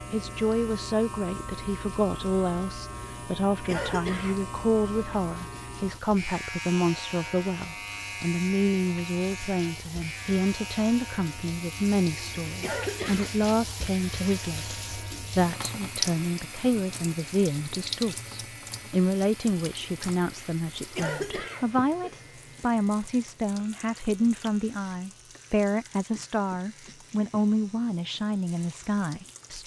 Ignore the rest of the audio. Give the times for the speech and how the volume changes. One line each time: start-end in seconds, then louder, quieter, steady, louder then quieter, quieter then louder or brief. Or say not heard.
0.1-29.6 steady.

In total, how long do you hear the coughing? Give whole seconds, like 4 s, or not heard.
3 s.